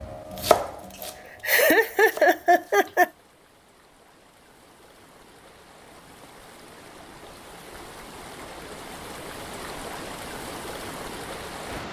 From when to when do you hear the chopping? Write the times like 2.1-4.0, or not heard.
0.0-2.9.